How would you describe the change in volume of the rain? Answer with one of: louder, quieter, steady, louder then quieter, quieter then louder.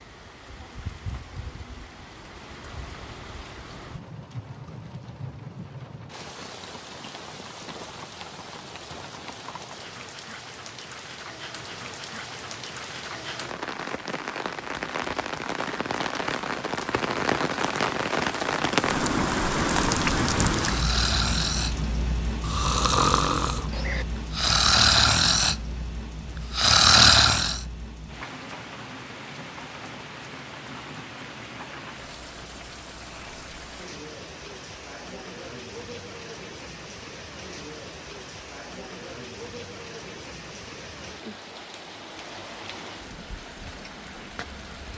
louder then quieter.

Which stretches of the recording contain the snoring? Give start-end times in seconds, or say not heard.
20.6-21.8, 22.4-25.6, 26.5-27.6.